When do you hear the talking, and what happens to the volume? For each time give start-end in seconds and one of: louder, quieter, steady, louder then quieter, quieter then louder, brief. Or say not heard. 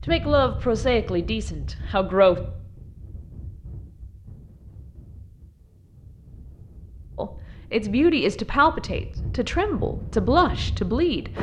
0.1-2.4 brief
7.2-11.3 quieter then louder.